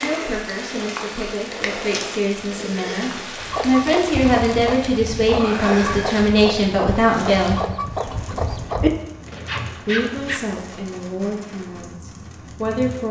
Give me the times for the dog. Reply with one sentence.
You can't hear the dog here.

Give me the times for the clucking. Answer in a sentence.
The clucking can be heard from 3.4 to 8.9 s.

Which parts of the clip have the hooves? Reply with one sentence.
You can hear the hooves from 4.1 to 10.4 s.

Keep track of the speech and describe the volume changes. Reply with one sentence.
The loudness of the speech goes up, then down.